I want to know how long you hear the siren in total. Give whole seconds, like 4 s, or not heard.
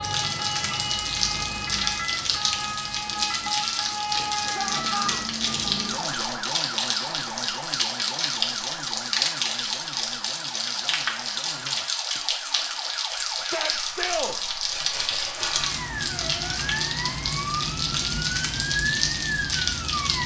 20 s.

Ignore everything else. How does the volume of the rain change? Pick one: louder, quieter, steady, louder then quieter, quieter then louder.
steady.